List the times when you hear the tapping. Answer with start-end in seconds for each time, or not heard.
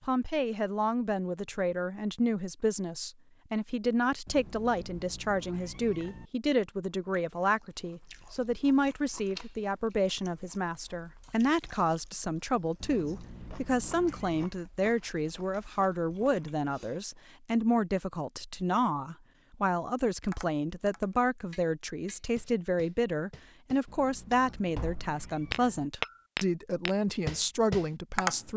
20.2-28.5.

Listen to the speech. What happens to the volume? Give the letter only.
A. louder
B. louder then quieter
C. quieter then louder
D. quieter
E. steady
E.